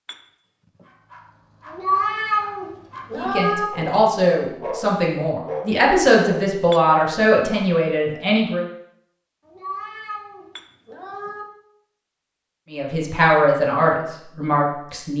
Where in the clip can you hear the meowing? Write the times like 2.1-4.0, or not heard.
1.6-3.6, 9.4-11.4.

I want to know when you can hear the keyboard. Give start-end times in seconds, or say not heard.
not heard.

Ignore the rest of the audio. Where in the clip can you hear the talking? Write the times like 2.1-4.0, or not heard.
3.1-8.7, 12.7-15.1.